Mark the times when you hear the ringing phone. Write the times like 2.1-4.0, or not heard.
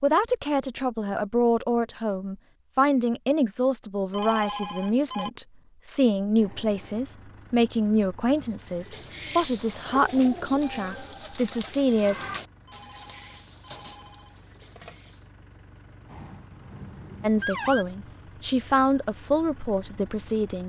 4.1-5.3, 12.7-15.1.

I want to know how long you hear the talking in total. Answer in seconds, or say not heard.
16 s.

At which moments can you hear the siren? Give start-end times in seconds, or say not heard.
10.6-12.4, 16.1-17.9.